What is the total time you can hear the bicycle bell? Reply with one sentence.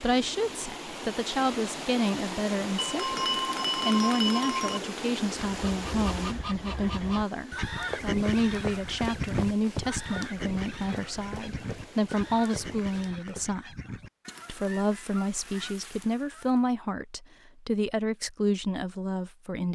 The bicycle bell can be heard for 2 seconds in total.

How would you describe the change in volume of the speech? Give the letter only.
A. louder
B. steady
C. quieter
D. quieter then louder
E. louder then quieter
B.